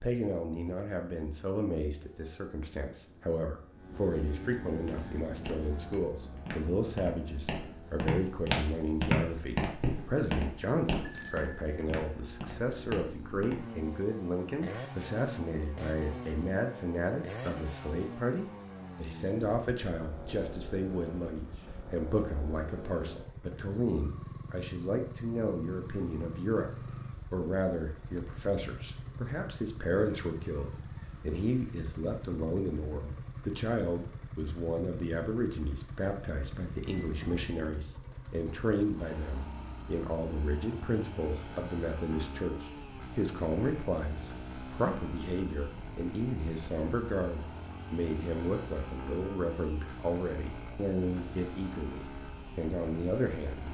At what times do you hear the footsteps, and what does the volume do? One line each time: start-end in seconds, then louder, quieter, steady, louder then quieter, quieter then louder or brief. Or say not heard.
4.8-13.7 louder then quieter.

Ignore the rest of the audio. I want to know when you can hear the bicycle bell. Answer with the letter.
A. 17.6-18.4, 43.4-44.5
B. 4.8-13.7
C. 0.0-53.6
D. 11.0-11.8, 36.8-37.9
D.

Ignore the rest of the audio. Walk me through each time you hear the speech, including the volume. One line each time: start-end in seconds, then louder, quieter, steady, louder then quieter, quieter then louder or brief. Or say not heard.
0.0-53.6 steady.